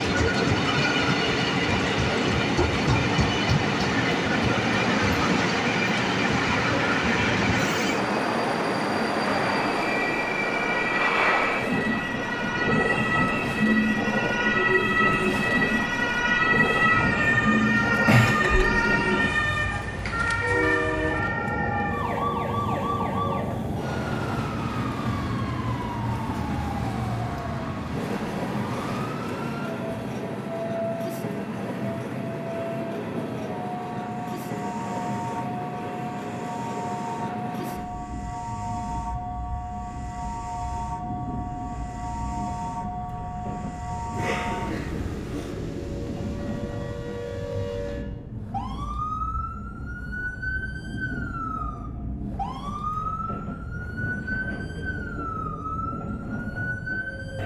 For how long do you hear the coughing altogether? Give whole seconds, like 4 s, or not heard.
2 s.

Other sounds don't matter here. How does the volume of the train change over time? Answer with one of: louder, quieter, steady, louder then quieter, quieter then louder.
quieter.